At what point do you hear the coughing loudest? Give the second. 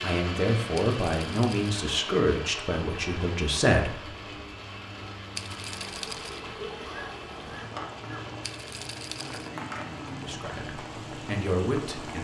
7 s.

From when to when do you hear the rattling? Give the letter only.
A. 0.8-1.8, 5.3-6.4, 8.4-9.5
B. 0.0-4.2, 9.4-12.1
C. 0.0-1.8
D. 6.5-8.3
A.